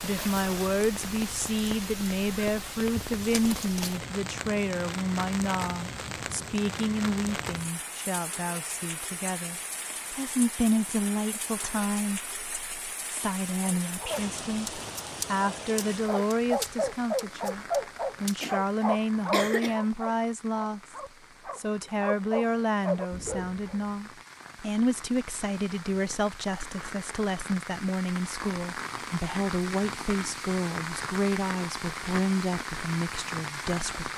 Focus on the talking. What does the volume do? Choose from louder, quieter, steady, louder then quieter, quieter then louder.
steady.